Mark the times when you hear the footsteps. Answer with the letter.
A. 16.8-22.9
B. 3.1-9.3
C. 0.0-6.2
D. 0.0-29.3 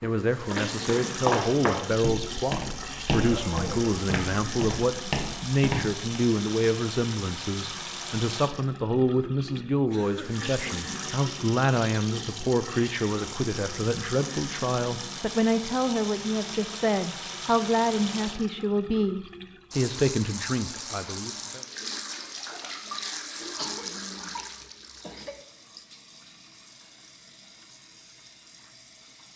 C.